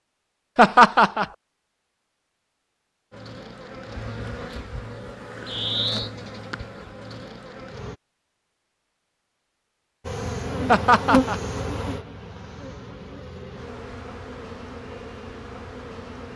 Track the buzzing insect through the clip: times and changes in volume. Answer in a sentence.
The buzzing insect can be heard from 3.1 to 8.0 s, getting louder then quieter; and from 10.1 to 16.3 s, getting quieter.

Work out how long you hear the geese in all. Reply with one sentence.
You can't hear the geese here.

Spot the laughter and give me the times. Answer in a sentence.
You can hear the laughter from 0.6 to 1.2 s and from 10.7 to 11.4 s.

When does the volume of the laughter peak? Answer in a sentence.
The loudest moment of the laughter is at 1 second.